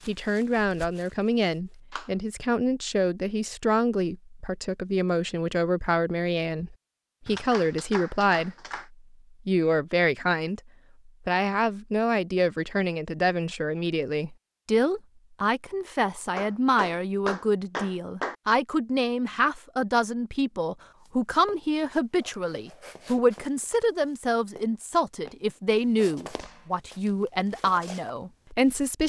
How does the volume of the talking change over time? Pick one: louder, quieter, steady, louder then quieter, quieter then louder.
steady.